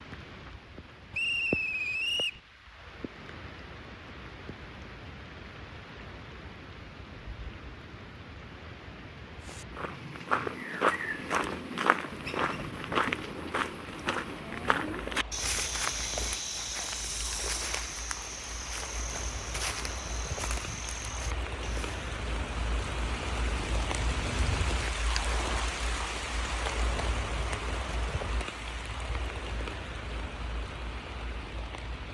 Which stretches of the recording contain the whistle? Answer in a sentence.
The whistle can be heard from 1.1 to 2.4 s.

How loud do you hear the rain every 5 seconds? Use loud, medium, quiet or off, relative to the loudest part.
medium, medium, medium, medium, loud, loud, medium.